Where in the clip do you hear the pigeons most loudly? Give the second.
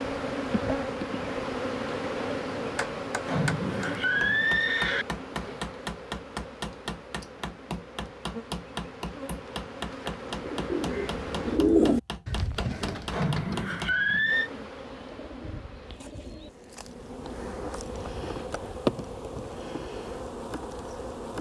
12 s.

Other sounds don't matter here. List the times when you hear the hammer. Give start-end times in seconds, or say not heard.
2.6-14.0.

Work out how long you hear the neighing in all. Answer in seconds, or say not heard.
3 s.